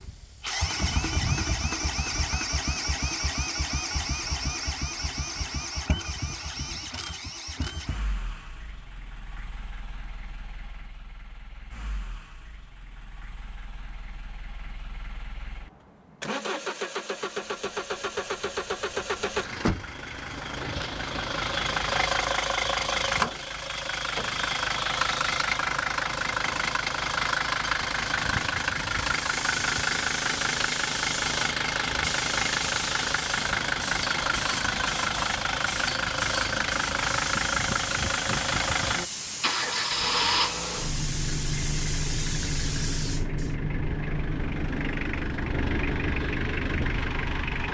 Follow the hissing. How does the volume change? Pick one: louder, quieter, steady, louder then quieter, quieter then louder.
steady.